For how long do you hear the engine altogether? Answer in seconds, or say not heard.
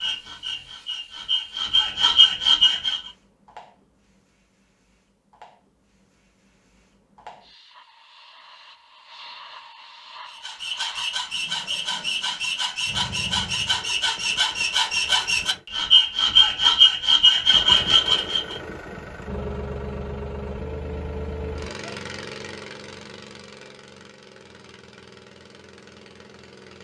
12 s.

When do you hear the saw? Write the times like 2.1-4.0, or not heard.
0.0-3.1, 10.3-18.6.